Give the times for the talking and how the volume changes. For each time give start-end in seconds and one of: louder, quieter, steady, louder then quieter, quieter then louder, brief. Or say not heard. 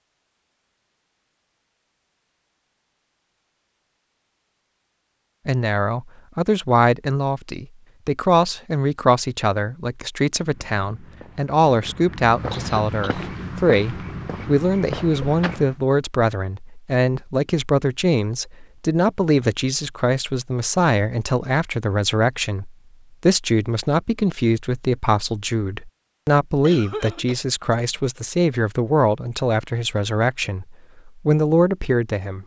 5.5-32.4 steady.